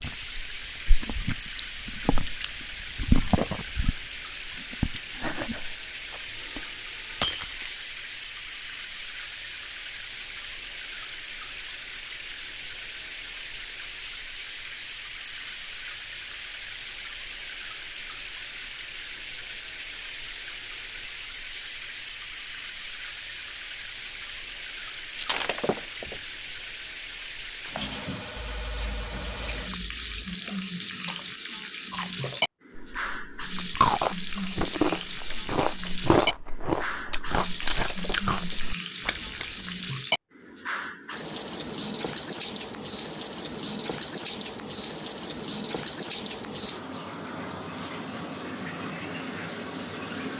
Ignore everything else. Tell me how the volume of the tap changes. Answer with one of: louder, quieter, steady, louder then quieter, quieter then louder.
steady.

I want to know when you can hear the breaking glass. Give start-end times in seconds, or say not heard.
7.2-7.8, 25.1-26.2, 37.7-38.6.